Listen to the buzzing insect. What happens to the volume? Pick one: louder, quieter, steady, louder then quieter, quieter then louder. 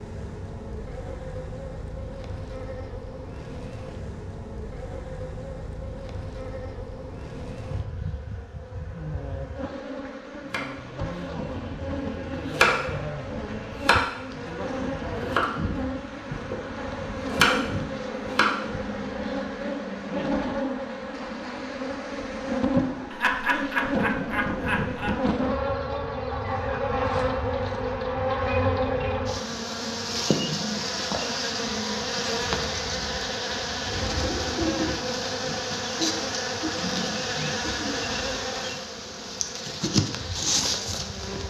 louder.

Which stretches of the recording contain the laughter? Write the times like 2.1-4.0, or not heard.
23.1-25.1.